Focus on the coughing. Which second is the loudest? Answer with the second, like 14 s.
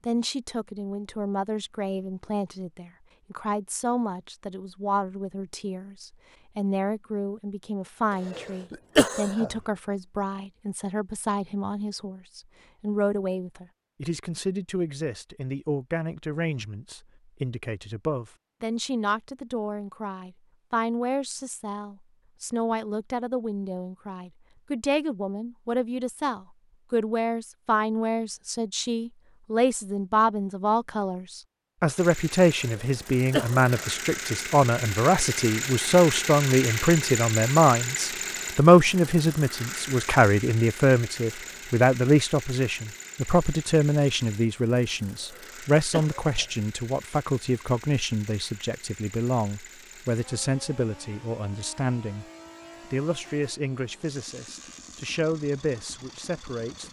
9 s.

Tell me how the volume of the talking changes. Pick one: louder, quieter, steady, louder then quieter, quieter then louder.
louder then quieter.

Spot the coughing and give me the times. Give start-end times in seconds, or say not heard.
8.3-9.5, 32.7-33.9, 45.3-46.5.